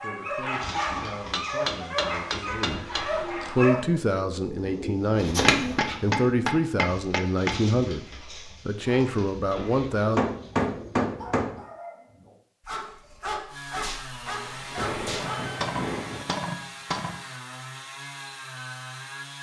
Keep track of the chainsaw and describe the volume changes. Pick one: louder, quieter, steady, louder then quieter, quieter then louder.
steady.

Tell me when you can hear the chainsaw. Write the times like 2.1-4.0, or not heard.
13.4-19.3.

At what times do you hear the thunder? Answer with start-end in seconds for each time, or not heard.
14.2-16.2.